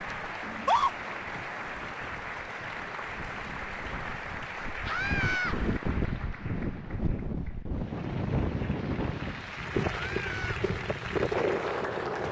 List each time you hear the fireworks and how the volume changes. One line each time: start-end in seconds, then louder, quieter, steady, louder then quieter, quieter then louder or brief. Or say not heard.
not heard.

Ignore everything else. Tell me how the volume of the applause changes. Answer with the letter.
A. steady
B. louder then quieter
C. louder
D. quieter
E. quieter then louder
E.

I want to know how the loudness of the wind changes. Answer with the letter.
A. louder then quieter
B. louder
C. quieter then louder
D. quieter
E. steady
B.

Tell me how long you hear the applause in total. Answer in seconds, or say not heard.
12 s.